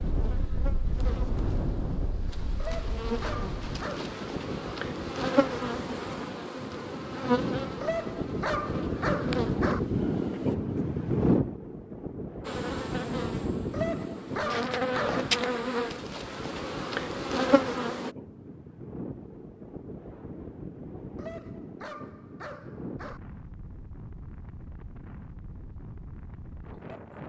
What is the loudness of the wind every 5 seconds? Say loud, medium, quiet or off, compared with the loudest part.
medium, loud, loud, medium, quiet, quiet.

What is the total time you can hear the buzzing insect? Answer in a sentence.
The buzzing insect can be heard for 16 seconds in total.